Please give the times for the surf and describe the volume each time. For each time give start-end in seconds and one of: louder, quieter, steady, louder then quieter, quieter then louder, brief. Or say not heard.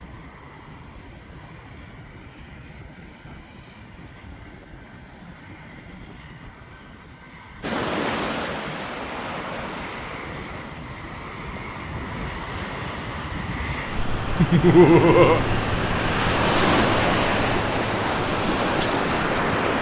7.6-19.7 quieter then louder.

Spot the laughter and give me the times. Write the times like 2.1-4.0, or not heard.
14.3-15.4.